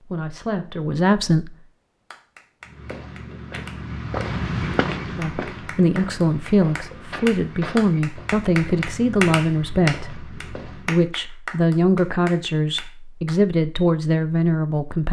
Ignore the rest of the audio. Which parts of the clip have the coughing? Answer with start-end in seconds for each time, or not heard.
not heard.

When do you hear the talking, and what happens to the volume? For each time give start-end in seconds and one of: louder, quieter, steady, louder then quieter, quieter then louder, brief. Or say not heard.
0.1-1.5 brief
5.2-15.0 steady.